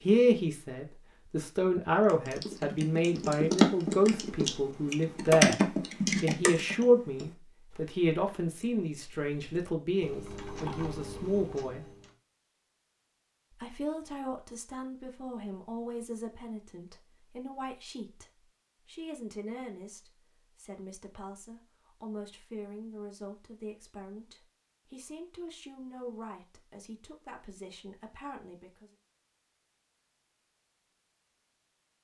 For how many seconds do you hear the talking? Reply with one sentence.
You can hear the talking for 27 seconds altogether.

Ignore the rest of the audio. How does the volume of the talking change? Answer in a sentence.
The volume of the talking goes down.